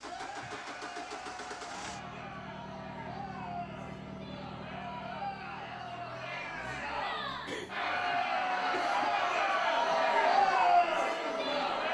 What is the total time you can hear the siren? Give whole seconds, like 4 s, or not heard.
not heard.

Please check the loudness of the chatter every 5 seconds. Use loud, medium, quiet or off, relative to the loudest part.
quiet, medium, loud.